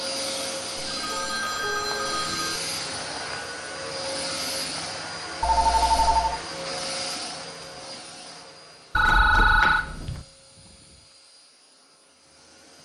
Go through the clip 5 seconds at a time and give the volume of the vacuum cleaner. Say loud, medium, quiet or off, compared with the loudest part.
loud, loud, quiet.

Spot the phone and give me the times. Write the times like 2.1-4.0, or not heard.
0.8-2.6, 5.4-6.4, 8.9-10.2.